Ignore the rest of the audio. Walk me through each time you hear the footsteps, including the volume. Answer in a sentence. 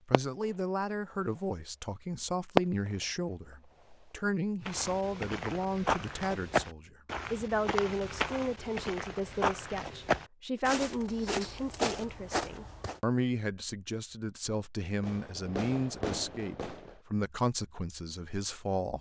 You can hear the footsteps from 4.7 to 13.0 s, at a steady volume.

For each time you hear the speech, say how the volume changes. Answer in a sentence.
The speech can be heard from 0.1 to 18.9 s, at a steady volume.